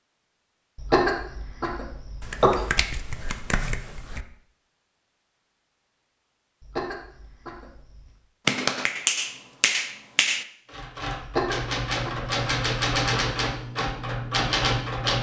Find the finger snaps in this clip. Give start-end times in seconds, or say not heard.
2.2-4.2, 8.4-10.4.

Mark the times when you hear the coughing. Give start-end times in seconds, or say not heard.
0.8-2.7, 6.6-8.0, 11.2-12.3.